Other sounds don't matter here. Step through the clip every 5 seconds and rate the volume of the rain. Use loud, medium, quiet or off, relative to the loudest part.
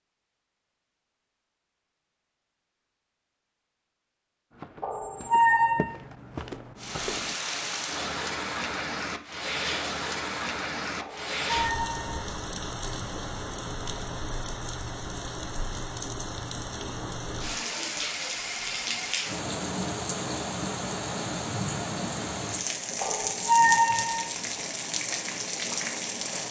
off, loud, loud, loud, loud, loud.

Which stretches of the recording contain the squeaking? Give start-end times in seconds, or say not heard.
4.8-6.0, 11.0-12.2, 23.0-24.3.